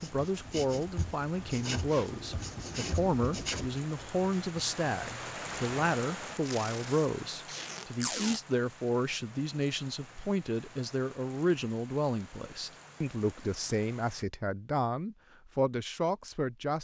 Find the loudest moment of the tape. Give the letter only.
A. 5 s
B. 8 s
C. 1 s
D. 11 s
B.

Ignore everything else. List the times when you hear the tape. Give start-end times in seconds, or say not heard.
6.5-8.4.